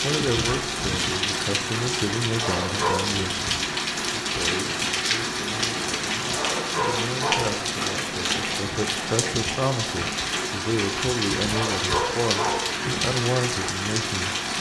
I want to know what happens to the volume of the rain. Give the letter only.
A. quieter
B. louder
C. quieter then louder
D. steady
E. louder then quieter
D.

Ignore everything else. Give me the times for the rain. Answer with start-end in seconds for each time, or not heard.
0.0-14.5.